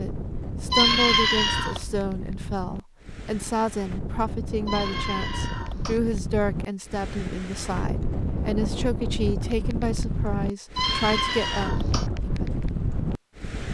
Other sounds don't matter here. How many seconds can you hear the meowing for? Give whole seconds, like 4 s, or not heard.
4 s.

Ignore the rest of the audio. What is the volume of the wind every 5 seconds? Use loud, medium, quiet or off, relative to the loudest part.
medium, loud, loud.